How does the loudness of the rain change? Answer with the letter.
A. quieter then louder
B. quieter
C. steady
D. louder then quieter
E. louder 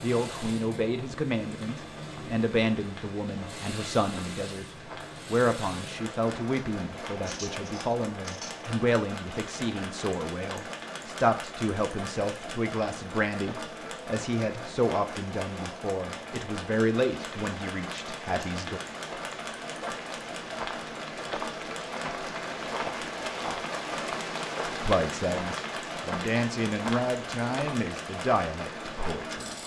E.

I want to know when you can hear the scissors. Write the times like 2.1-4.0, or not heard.
7.2-8.7.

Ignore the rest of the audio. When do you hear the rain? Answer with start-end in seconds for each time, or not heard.
0.0-29.6.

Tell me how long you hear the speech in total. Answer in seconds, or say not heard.
23 s.